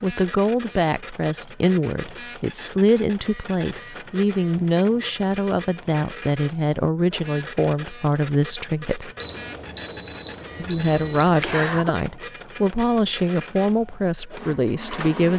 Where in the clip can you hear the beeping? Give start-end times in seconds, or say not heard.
9.2-11.9.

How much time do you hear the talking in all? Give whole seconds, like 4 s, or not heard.
14 s.